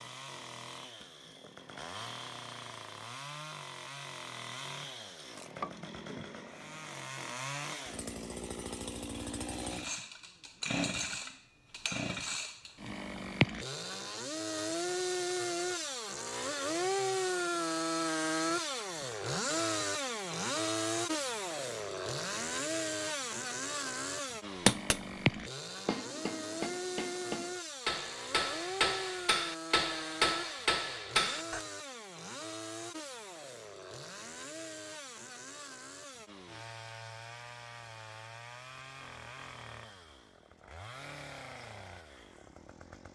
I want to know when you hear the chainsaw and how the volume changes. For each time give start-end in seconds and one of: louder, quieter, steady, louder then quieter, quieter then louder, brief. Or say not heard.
0.0-43.1 louder then quieter.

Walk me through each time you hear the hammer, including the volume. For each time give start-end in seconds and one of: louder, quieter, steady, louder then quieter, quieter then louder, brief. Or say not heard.
24.6-31.6 louder.